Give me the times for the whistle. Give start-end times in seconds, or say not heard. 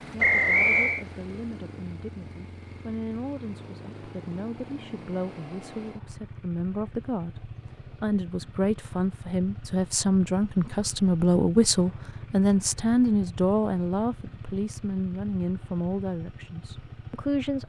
0.2-1.1.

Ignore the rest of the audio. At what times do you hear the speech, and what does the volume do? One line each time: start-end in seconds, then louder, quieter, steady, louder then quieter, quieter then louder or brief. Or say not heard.
0.1-17.6 louder then quieter.